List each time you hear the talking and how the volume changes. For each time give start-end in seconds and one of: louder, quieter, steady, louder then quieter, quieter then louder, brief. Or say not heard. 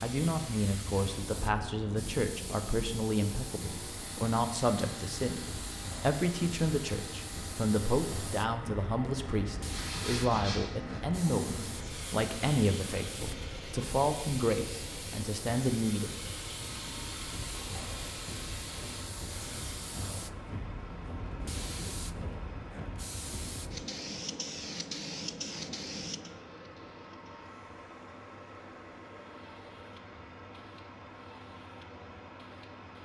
0.0-16.1 steady.